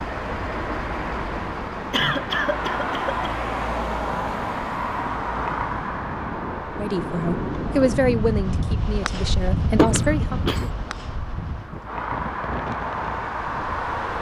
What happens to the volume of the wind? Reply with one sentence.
The loudness of the wind goes up, then down.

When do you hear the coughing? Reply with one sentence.
You can hear the coughing from 1.9 to 3.3 s and from 9.8 to 10.7 s.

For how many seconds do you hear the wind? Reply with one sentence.
You can hear the wind for 14 seconds altogether.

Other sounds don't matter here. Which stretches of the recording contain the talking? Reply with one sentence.
You can hear the talking from 6.8 to 10.4 s.